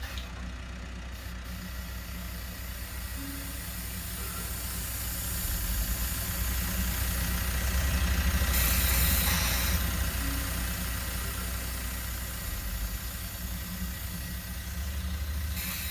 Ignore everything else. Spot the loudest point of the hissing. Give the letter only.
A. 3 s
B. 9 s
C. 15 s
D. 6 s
B.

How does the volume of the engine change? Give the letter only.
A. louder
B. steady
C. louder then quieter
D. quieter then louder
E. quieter
C.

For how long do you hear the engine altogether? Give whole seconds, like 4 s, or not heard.
16 s.